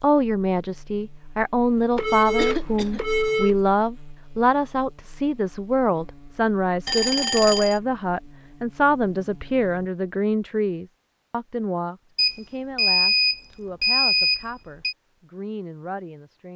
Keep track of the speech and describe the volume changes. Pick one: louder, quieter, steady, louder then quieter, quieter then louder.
quieter.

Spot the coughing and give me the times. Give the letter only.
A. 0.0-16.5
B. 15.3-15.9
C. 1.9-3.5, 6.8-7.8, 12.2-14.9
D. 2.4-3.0
D.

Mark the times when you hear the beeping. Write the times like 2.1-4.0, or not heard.
1.9-3.5, 6.8-7.8, 12.2-14.9.